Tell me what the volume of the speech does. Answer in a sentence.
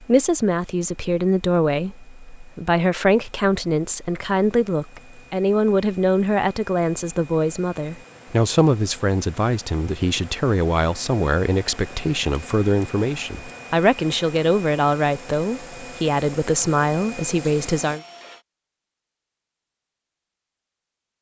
The volume of the speech stays about the same.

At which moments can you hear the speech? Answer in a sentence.
The speech can be heard from 0.0 to 18.0 s.